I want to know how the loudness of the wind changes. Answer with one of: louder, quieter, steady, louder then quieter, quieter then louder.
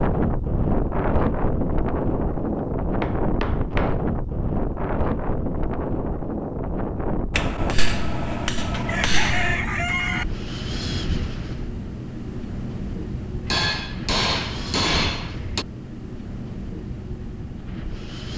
quieter.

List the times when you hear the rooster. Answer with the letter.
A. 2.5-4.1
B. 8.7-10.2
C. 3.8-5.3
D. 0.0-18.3
B.